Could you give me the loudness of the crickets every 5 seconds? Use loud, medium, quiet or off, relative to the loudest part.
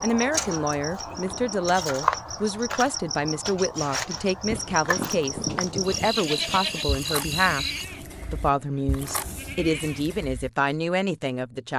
loud, loud, off.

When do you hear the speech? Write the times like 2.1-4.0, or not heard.
0.0-7.7, 8.3-11.7.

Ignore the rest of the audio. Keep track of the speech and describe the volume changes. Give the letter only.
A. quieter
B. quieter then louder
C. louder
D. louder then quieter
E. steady
E.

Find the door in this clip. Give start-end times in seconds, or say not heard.
not heard.